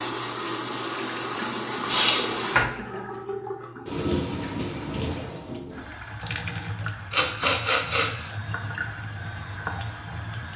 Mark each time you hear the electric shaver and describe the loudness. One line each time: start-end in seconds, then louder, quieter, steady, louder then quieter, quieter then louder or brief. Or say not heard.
not heard.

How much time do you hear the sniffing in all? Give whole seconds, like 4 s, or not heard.
2 s.